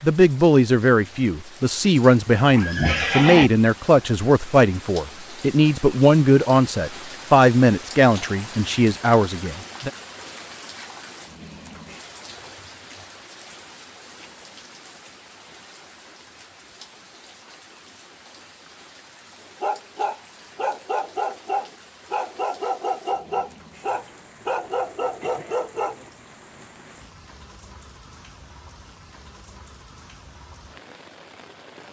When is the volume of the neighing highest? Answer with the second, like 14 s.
3 s.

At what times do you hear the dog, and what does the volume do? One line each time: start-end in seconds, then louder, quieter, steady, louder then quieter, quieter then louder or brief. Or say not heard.
19.6-26.1 steady.